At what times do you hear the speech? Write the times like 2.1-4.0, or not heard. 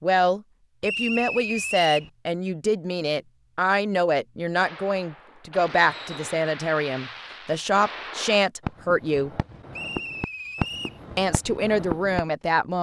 0.0-9.3, 11.2-12.7.